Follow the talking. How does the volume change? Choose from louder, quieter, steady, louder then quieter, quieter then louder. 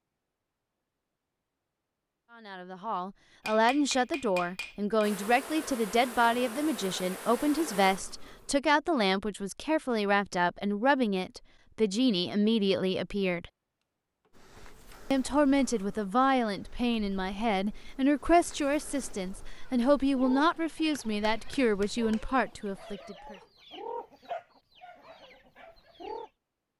steady.